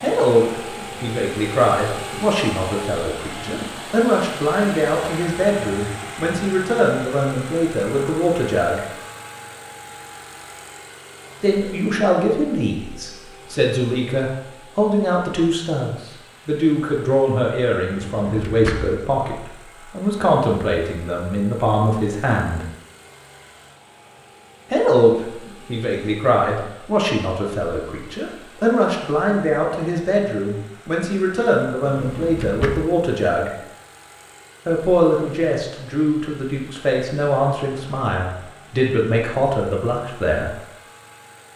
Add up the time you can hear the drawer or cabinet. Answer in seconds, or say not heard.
2 s.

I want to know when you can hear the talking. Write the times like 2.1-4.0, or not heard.
0.0-8.8, 11.4-22.6, 24.7-33.5, 34.6-40.5.